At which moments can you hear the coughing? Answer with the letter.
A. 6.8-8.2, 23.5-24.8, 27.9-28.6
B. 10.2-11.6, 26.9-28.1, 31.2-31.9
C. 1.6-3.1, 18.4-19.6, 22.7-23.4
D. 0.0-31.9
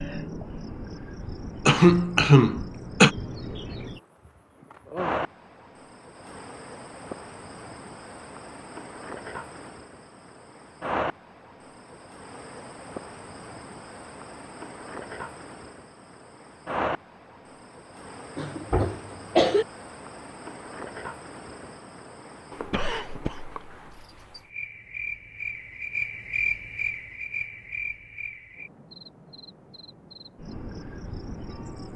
C.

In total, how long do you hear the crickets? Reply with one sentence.
The crickets can be heard for 32 seconds in total.